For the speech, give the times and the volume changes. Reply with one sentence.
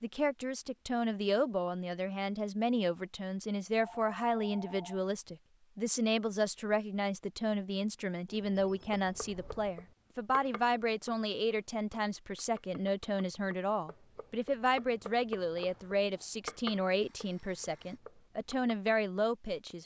You can hear the speech from 0.0 to 19.8 s, at a steady volume.